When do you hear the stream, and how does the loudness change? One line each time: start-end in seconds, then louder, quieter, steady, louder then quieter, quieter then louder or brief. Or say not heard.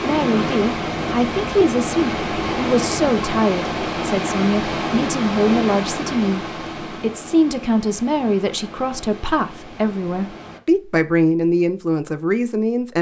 0.0-10.6 quieter.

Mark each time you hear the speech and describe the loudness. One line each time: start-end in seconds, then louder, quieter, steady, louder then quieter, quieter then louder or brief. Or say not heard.
0.0-12.9 steady.